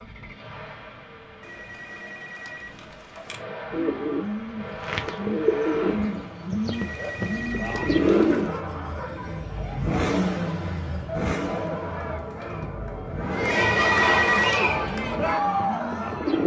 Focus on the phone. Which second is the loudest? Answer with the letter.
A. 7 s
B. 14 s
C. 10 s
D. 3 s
B.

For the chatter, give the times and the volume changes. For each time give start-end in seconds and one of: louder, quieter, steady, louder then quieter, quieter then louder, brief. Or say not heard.
8.0-16.4 louder.